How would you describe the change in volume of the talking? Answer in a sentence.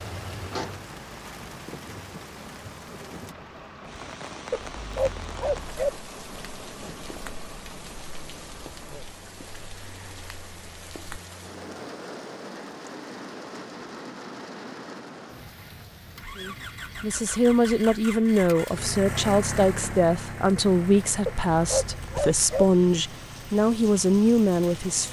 The loudness of the talking stays about the same.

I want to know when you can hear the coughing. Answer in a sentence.
You can't hear the coughing here.